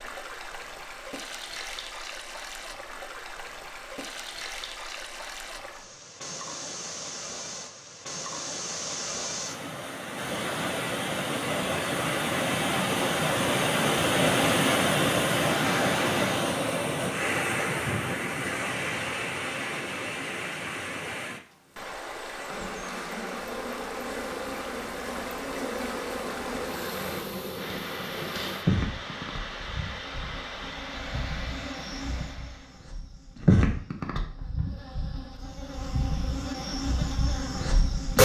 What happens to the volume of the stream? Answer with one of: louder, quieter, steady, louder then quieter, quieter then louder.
louder then quieter.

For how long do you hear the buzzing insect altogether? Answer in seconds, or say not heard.
16 s.